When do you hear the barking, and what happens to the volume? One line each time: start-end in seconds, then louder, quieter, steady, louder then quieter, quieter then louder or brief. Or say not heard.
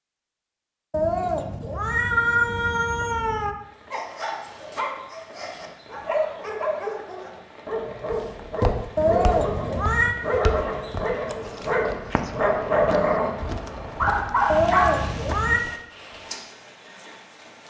3.9-13.3 louder
13.9-14.9 brief.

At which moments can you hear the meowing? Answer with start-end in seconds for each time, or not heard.
0.9-3.5, 8.9-10.2, 14.4-15.6.